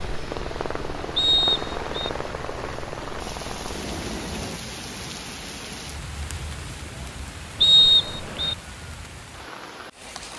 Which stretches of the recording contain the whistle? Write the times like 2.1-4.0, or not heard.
1.1-2.1, 7.6-8.6.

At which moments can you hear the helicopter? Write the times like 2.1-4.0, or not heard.
0.0-4.6.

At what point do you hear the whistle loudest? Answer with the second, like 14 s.
8 s.